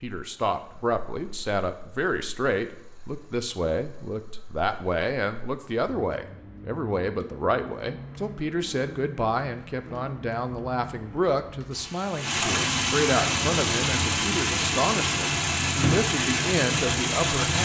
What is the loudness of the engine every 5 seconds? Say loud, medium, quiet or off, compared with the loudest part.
quiet, quiet, loud, loud.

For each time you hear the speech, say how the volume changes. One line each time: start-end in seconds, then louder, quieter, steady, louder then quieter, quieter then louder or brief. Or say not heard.
0.0-17.6 steady.